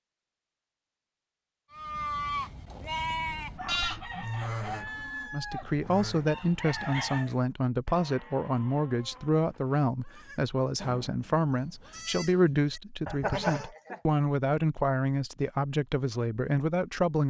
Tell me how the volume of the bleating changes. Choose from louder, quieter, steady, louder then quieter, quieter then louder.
quieter then louder.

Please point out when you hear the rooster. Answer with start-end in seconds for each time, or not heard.
3.2-7.2.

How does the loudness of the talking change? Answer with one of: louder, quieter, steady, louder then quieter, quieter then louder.
steady.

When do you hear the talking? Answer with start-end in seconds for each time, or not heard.
5.3-17.2.